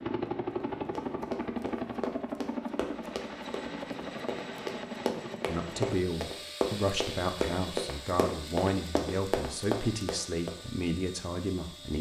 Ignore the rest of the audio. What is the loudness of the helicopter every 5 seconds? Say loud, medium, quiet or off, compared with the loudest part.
loud, medium, quiet.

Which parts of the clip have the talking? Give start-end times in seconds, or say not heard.
5.5-11.9.